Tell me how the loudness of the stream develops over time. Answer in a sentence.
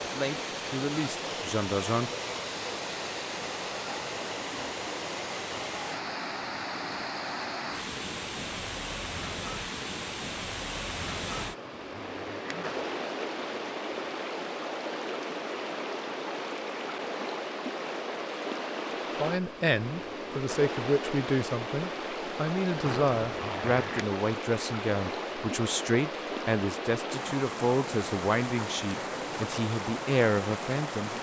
The loudness of the stream stays about the same.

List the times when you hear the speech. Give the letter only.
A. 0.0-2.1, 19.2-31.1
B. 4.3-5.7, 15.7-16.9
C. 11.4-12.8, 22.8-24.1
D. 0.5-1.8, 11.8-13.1
A.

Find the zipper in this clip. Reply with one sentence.
You can hear the zipper from 11.4 to 12.8 s and from 22.8 to 24.1 s.